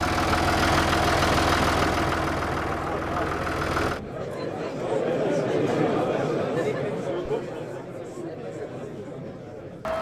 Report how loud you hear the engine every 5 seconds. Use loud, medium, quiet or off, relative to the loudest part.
loud, off.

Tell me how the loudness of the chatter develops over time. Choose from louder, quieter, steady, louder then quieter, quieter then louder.
louder then quieter.